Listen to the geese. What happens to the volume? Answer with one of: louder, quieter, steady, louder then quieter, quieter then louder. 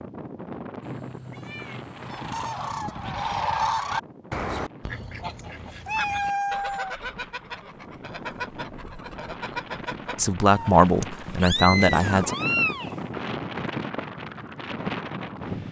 quieter.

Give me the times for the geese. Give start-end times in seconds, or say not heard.
1.9-11.5.